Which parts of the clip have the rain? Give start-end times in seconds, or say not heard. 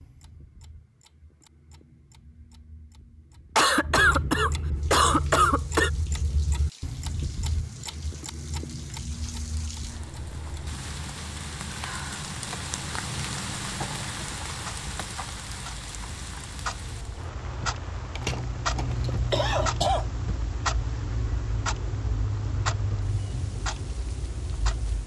4.8-25.0.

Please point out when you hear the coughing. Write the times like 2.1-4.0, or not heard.
3.5-5.9, 13.8-14.6, 18.1-20.1.